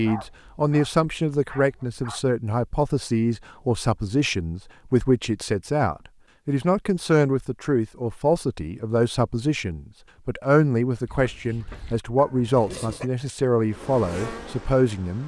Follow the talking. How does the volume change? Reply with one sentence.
The volume of the talking stays about the same.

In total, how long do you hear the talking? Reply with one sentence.
You can hear the talking for 15 seconds altogether.